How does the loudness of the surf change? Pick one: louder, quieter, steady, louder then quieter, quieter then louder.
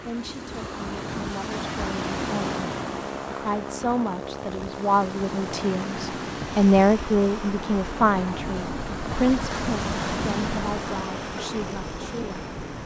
quieter then louder.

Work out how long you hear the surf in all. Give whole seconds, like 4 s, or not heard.
13 s.